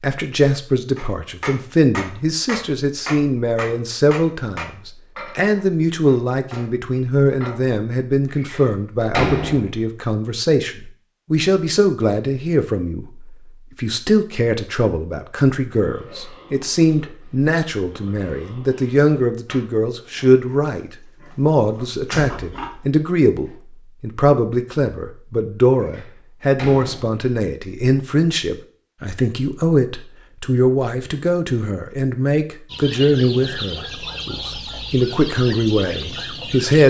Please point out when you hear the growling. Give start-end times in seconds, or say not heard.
not heard.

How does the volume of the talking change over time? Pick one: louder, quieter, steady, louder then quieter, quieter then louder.
steady.